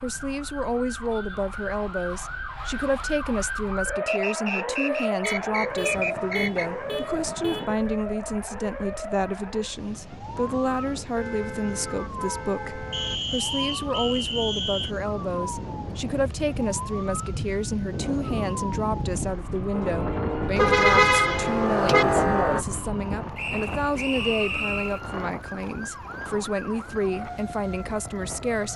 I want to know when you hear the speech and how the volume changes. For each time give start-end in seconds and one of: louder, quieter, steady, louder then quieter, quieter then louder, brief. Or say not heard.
0.0-28.7 steady.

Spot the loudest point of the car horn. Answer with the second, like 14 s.
21 s.